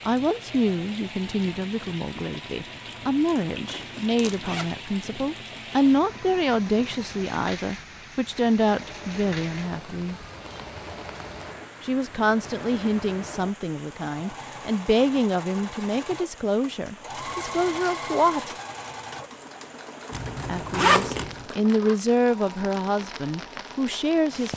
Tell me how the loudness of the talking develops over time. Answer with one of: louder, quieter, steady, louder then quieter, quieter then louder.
steady.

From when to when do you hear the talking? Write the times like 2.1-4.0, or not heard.
0.1-10.2, 11.8-18.5, 20.4-24.5.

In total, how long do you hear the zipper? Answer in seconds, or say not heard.
3 s.